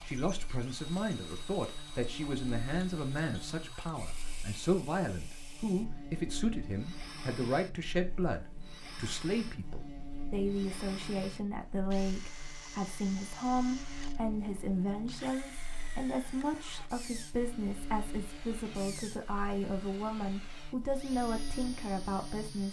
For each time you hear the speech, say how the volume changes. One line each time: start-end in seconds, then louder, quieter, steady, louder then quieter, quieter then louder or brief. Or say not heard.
0.0-22.6 steady.